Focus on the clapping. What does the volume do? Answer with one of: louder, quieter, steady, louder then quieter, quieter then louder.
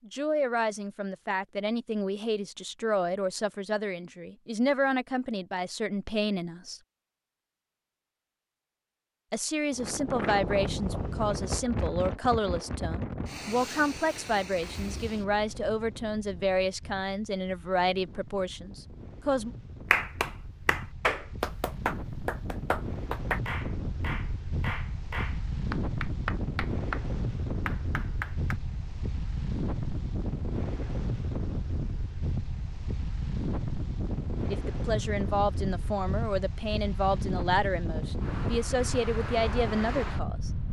quieter.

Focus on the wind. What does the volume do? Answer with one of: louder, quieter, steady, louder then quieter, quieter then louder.
quieter then louder.